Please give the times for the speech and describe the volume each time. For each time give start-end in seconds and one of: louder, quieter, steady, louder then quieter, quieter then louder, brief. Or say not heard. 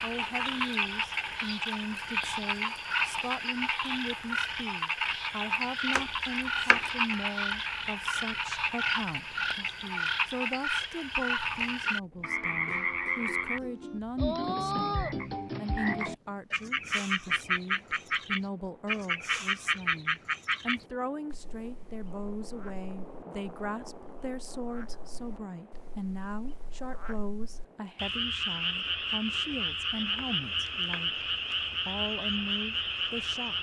0.0-33.5 steady.